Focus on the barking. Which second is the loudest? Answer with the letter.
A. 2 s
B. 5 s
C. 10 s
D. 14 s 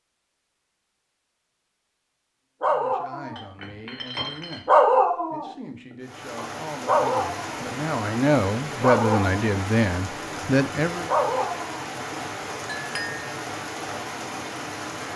B.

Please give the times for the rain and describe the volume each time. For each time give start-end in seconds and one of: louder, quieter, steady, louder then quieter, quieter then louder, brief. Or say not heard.
6.0-15.1 steady.